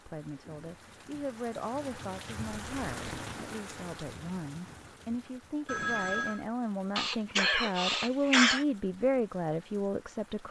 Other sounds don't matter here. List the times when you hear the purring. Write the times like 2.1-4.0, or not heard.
not heard.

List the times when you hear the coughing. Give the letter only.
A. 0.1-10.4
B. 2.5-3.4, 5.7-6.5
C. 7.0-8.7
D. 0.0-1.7
C.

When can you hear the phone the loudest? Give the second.
6 s.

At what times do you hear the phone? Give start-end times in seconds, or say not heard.
2.5-3.4, 5.7-6.5.